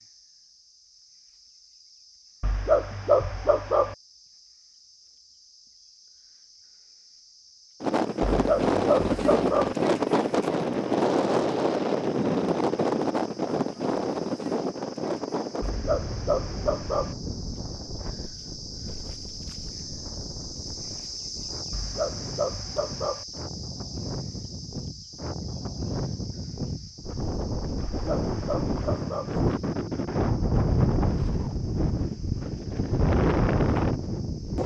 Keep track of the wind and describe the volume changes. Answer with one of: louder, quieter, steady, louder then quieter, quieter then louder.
quieter then louder.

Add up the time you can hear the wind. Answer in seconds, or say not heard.
27 s.